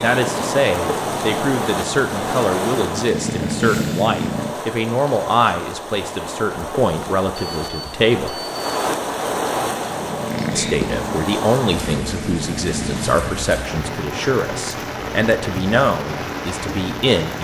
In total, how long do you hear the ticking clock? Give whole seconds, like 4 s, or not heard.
not heard.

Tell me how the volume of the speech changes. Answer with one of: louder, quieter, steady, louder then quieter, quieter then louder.
steady.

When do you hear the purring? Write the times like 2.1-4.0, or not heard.
0.0-4.5, 9.7-13.2.